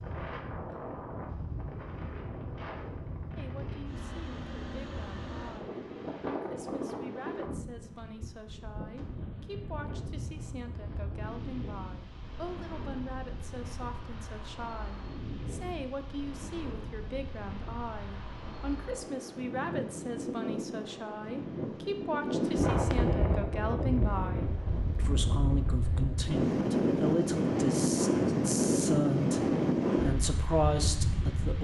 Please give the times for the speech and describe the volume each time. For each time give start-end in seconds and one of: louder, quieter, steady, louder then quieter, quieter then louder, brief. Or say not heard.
3.4-31.6 louder.